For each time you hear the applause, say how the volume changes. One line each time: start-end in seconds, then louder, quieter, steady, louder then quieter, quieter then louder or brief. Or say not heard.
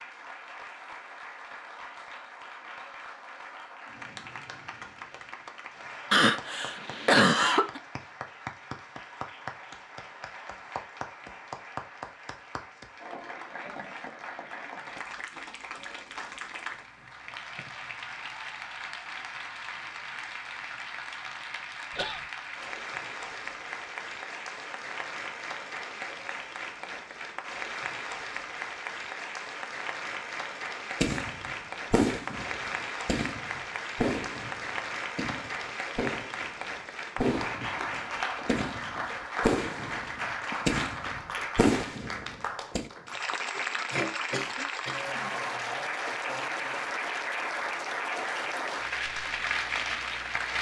0.0-50.5 louder.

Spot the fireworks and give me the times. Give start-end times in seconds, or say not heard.
31.0-42.9.